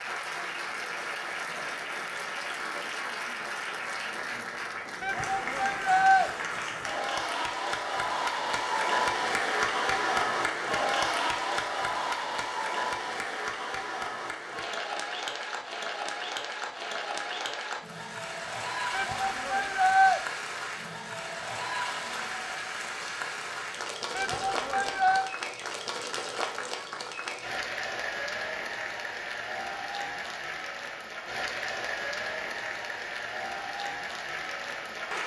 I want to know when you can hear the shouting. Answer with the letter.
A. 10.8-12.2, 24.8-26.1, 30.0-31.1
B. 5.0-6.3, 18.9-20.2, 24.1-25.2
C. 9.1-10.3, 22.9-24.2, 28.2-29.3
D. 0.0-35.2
B.